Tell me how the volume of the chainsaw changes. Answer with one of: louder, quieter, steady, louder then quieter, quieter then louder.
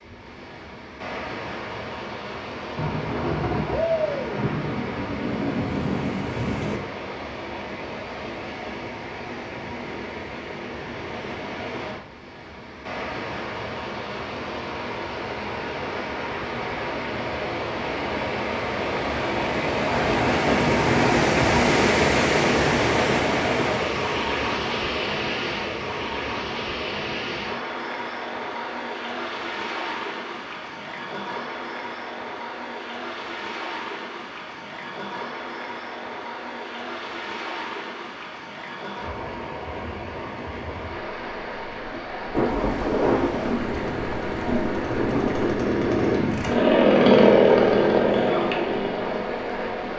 louder then quieter.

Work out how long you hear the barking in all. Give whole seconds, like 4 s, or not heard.
not heard.